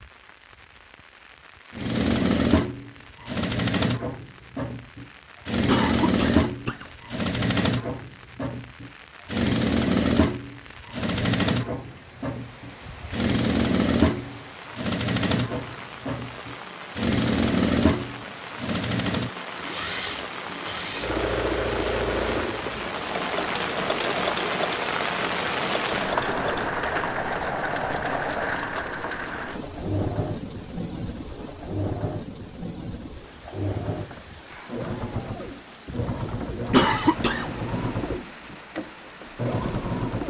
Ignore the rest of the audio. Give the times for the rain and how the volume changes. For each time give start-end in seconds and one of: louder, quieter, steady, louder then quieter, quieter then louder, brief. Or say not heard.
0.0-40.2 louder then quieter.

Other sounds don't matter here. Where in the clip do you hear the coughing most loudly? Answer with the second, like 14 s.
37 s.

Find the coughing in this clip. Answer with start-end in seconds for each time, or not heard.
5.7-6.8, 36.7-37.5.